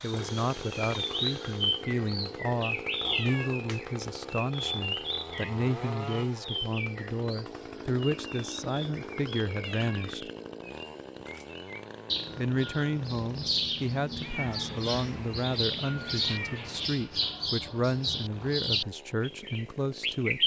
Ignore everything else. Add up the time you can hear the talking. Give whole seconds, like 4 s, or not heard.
18 s.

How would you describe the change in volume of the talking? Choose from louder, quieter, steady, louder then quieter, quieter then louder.
steady.